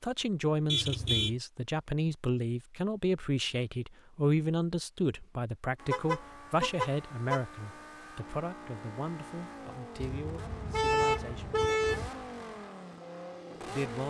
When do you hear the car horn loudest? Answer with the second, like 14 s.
11 s.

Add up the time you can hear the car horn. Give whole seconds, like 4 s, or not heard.
4 s.